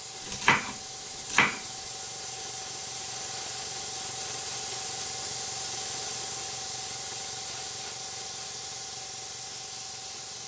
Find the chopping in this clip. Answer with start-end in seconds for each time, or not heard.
0.2-1.6.